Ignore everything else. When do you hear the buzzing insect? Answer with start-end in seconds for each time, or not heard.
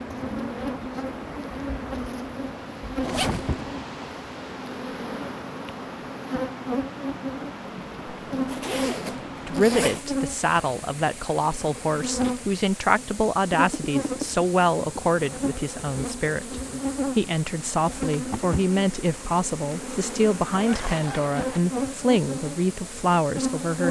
0.0-23.8.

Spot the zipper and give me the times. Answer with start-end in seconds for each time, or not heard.
3.0-3.8, 8.3-10.1, 20.5-21.6.